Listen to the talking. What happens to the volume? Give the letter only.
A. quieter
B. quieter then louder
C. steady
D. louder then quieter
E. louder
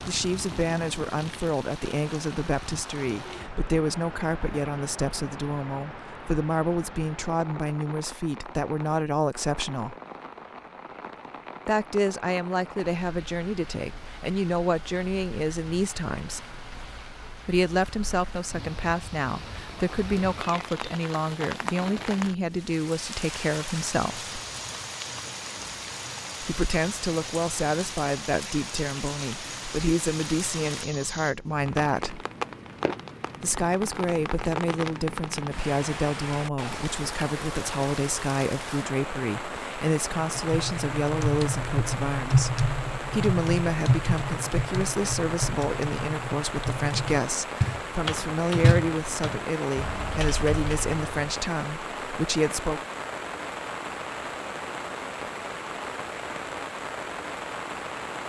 C.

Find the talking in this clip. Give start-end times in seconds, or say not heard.
0.1-9.9, 11.7-16.4, 17.4-24.3, 26.4-32.2, 33.4-52.8.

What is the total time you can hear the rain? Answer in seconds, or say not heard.
58 s.